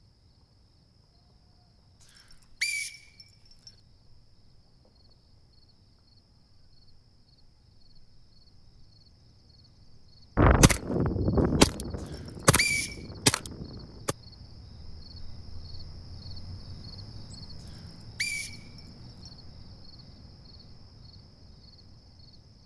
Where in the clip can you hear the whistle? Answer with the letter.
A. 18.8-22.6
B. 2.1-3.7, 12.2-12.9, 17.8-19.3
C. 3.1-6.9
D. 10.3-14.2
B.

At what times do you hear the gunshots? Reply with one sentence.
The gunshots can be heard from 10.3 to 14.2 s.